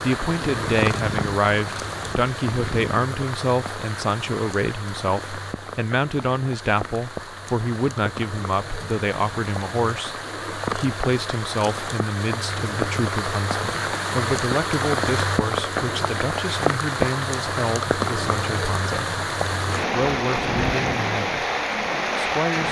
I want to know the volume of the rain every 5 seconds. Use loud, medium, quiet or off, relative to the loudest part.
medium, medium, loud, loud, loud.